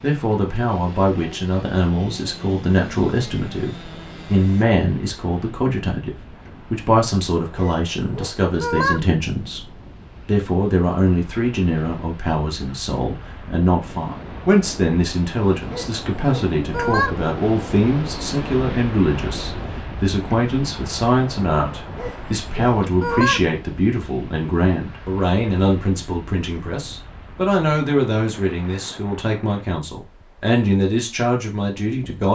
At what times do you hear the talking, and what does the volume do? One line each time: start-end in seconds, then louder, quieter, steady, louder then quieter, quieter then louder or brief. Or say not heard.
0.0-32.3 steady.